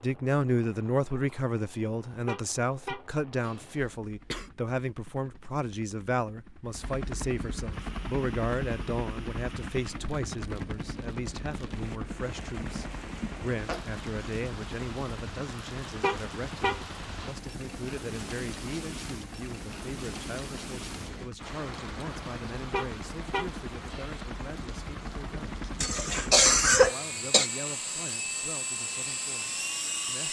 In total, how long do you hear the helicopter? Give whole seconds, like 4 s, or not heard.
30 s.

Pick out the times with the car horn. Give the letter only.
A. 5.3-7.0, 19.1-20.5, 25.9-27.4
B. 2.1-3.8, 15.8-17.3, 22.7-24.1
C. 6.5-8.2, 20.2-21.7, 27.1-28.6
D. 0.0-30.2
B.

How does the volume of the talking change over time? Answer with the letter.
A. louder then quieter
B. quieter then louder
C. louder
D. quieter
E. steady
D.